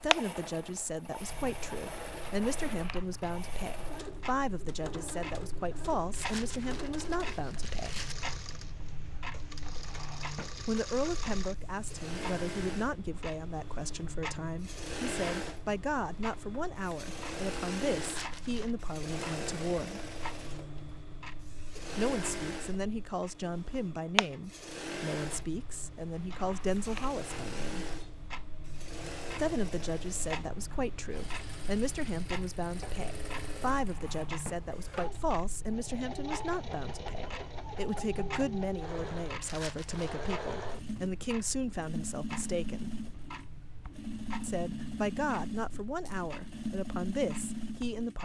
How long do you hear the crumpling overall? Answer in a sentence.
You can hear the crumpling for 4 seconds altogether.